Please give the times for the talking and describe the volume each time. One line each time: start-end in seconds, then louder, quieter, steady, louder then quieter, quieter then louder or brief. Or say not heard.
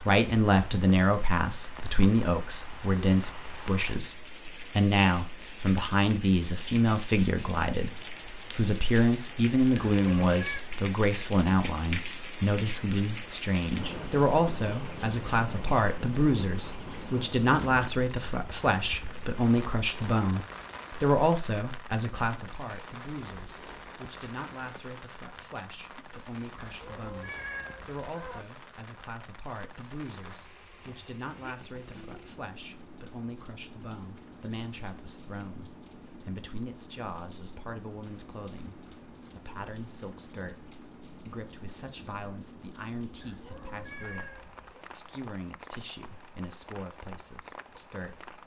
0.0-48.3 quieter.